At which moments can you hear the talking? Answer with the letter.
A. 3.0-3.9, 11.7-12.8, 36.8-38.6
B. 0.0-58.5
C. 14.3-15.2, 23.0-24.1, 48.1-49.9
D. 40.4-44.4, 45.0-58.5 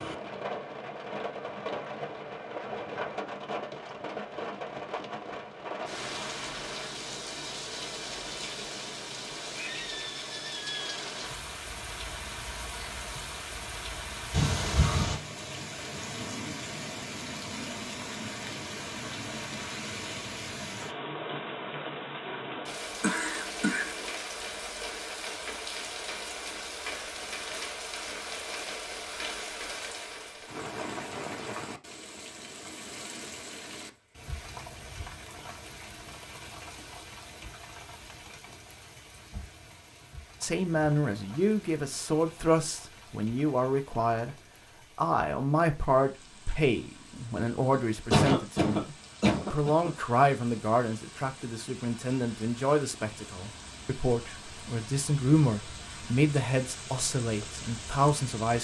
D.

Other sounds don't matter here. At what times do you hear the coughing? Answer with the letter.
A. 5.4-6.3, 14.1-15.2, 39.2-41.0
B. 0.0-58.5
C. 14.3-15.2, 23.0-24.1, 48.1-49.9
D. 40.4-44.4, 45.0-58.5
C.